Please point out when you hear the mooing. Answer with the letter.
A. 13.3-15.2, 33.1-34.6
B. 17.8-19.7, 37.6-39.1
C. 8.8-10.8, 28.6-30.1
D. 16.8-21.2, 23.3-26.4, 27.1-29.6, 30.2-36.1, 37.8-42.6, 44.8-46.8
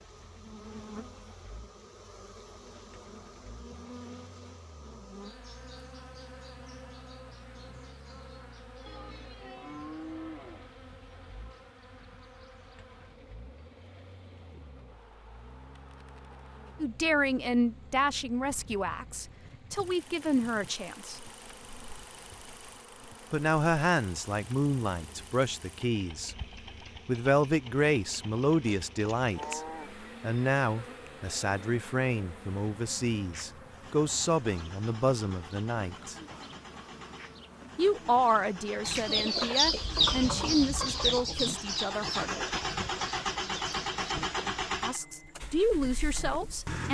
C.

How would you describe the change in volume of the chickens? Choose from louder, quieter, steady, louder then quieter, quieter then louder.
quieter.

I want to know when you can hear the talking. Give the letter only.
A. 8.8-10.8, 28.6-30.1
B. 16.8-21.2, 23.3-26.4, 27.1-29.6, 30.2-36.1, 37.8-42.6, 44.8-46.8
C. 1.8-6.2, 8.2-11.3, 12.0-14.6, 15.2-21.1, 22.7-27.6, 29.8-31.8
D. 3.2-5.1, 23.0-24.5
B.